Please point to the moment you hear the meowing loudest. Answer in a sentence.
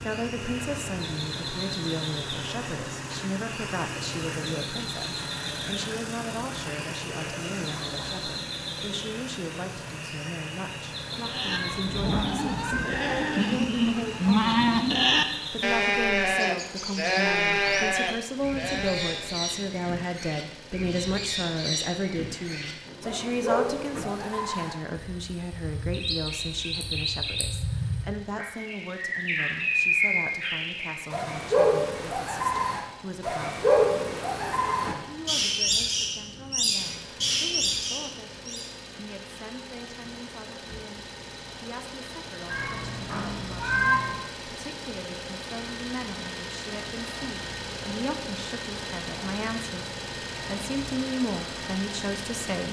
The volume of the meowing peaks at 44 seconds.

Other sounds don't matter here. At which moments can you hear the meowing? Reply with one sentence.
You can hear the meowing from 11.5 to 12.9 s and from 42.5 to 44.1 s.